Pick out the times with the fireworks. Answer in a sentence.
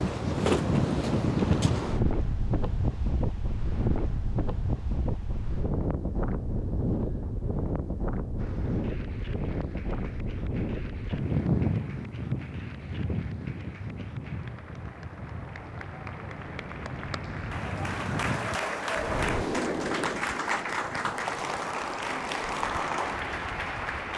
The fireworks can't be heard in this clip.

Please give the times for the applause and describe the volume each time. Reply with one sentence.
The applause can be heard from 8.3 to 24.1 s, getting louder.